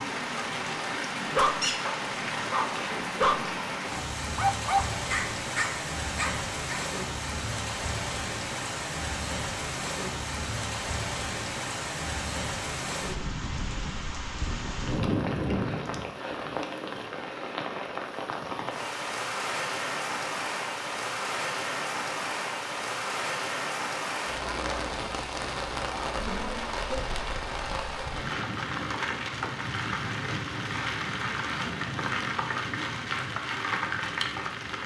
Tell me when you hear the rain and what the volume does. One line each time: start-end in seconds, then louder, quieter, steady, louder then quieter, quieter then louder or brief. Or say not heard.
0.0-34.8 steady.